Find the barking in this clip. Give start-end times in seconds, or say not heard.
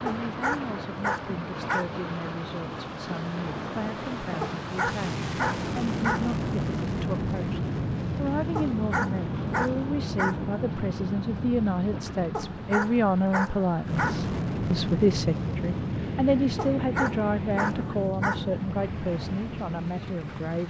0.1-2.0, 4.4-6.3, 8.6-10.6, 12.3-14.3, 16.6-18.6.